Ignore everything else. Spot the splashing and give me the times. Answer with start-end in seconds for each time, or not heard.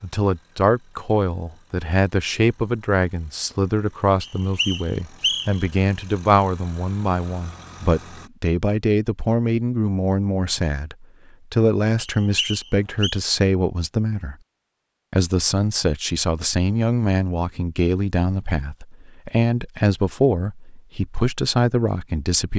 not heard.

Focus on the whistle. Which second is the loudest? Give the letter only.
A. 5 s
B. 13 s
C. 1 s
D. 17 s
A.